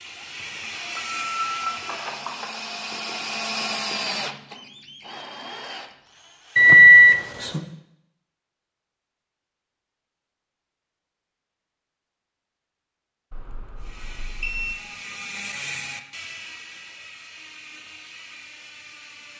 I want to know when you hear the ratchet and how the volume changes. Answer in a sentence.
You can hear the ratchet briefly from 0.0 to 2.1 s; and from 13.8 to 19.3 s, getting louder then quieter.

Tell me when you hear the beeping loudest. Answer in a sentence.
The loudest moment of the beeping is at 7 seconds.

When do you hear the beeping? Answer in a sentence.
The beeping can be heard from 0.8 to 2.6 s, from 6.5 to 7.7 s and from 13.3 to 14.8 s.